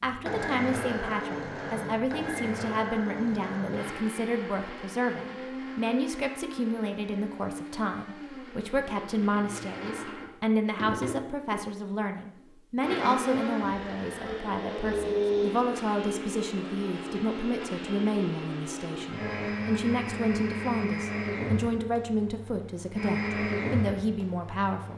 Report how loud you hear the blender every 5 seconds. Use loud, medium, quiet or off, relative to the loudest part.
loud, medium, loud, loud, loud.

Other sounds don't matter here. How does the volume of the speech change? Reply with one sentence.
The volume of the speech stays about the same.